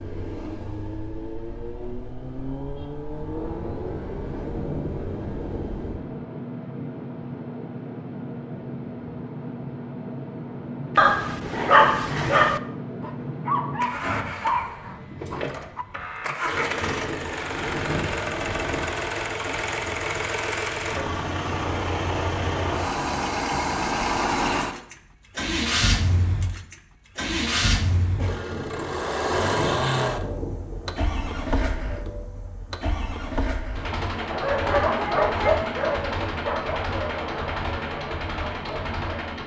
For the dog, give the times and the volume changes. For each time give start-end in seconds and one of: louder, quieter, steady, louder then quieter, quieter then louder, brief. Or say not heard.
10.9-15.8 quieter
34.2-39.4 quieter.